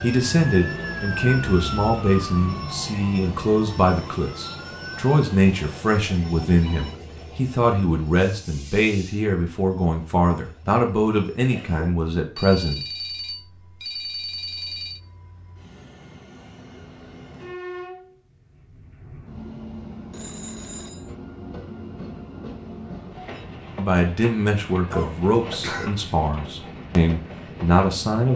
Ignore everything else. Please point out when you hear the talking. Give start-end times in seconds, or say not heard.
0.0-12.8, 23.8-28.3.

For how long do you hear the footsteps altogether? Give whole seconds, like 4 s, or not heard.
not heard.